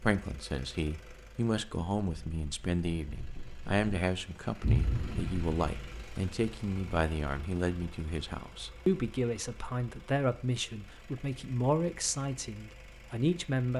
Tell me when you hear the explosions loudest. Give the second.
5 s.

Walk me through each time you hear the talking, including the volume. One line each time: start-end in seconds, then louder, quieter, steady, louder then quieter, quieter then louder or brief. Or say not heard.
0.0-13.7 steady.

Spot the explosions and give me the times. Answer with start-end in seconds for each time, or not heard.
4.6-6.0.